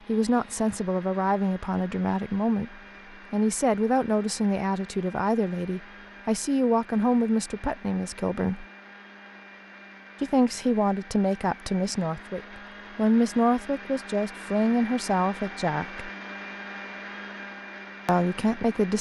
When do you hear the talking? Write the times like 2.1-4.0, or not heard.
0.1-8.7, 10.2-16.1, 18.1-18.9.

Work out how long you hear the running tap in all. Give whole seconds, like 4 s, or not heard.
not heard.